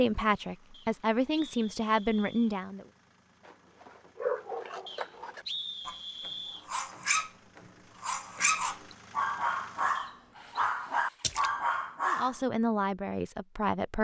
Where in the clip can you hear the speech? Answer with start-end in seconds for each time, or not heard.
0.0-2.9, 12.1-13.9.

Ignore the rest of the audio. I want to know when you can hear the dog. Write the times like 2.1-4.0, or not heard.
3.5-12.3.